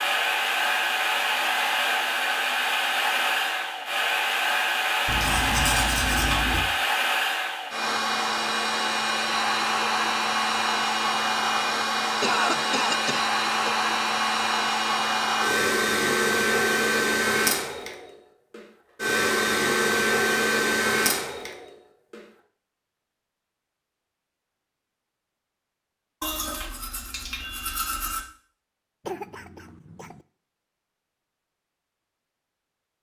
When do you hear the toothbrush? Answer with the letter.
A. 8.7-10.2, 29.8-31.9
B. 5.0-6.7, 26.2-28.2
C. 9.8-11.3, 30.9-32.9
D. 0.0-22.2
B.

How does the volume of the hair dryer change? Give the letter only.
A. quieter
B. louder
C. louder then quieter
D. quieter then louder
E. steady
E.